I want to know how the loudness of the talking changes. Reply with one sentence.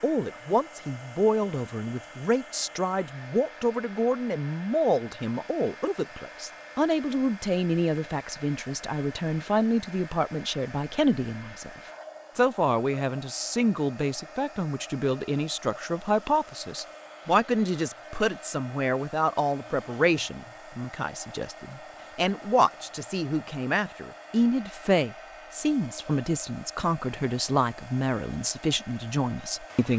The loudness of the talking stays about the same.